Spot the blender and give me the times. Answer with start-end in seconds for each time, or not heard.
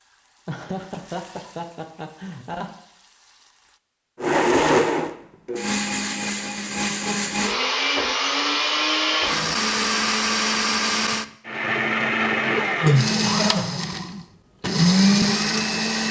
4.2-16.0.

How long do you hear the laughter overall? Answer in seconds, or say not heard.
4 s.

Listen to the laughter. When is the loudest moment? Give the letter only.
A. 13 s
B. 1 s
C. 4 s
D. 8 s
A.